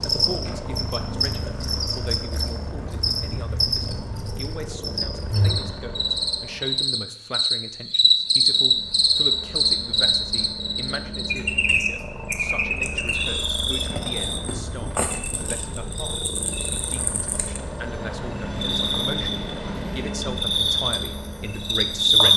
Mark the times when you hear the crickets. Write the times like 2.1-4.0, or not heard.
0.0-22.3.